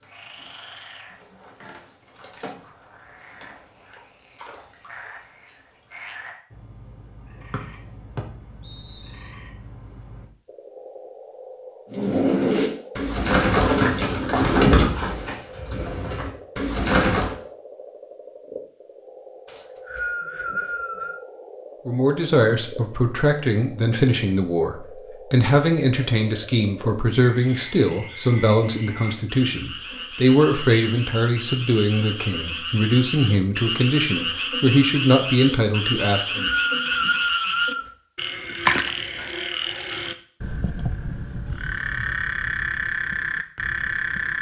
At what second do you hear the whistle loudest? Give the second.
37 s.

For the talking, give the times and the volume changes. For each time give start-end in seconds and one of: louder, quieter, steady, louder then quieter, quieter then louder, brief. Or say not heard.
21.9-36.5 steady.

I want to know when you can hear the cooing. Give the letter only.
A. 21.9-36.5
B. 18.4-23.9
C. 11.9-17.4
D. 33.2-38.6
C.